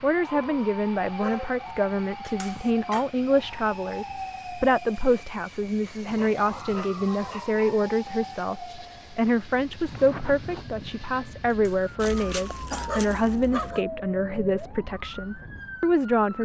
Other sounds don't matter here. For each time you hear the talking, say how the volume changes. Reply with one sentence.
The talking can be heard from 0.0 to 16.3 s, at a steady volume.